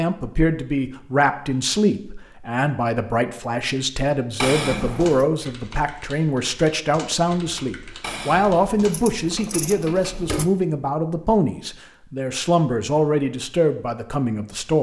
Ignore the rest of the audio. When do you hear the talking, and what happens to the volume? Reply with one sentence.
The talking can be heard from 0.0 to 14.7 s, at a steady volume.